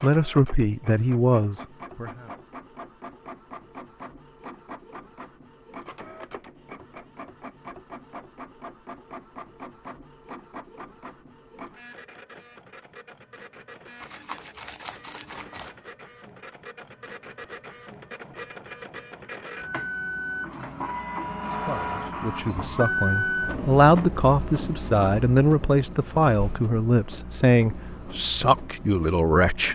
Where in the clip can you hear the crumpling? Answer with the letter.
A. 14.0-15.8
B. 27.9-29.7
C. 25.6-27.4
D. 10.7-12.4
A.